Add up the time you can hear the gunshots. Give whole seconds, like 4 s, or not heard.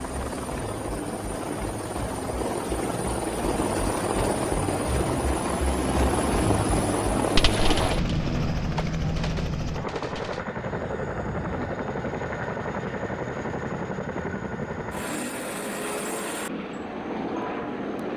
3 s.